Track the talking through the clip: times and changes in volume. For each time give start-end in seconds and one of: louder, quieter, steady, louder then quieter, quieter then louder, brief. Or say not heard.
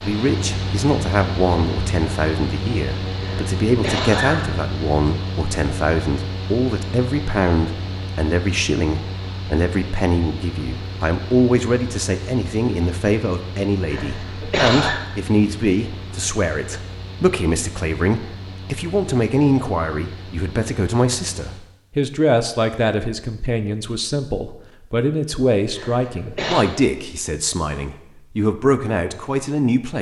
0.0-29.9 steady.